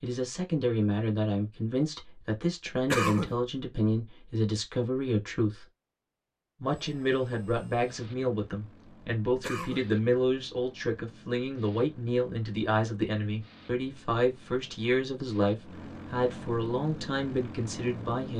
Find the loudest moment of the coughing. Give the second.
3 s.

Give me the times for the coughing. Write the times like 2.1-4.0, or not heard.
2.9-3.4, 9.4-9.9.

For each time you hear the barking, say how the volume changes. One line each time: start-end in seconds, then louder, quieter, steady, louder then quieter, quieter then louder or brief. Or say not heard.
not heard.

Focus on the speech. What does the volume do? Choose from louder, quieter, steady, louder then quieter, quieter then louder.
steady.